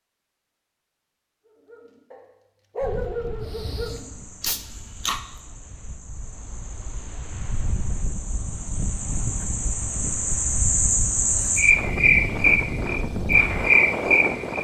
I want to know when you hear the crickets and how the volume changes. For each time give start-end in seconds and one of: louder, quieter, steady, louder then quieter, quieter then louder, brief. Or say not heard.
3.4-14.5 louder.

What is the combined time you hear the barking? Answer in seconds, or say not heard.
4 s.